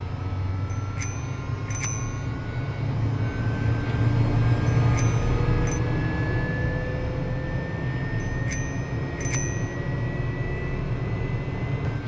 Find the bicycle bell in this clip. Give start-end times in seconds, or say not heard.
0.7-2.2, 4.9-5.8, 8.4-9.6.